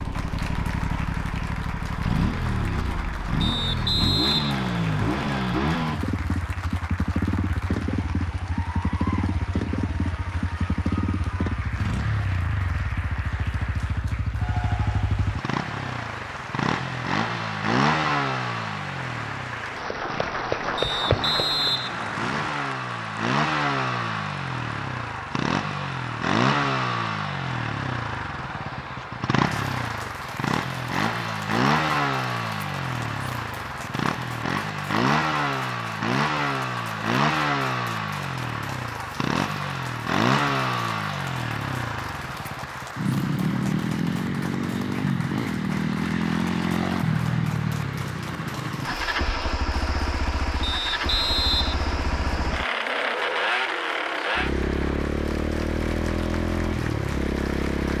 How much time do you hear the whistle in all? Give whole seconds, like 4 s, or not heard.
6 s.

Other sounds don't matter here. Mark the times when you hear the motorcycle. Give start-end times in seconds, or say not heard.
0.0-57.9.